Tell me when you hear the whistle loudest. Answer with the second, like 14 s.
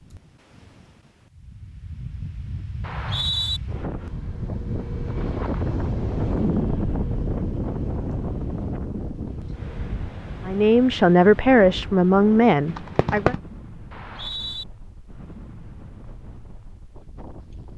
3 s.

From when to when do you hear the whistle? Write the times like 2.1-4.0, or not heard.
2.8-3.6, 13.9-14.7.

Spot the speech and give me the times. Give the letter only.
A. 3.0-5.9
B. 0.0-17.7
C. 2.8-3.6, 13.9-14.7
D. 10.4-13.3
D.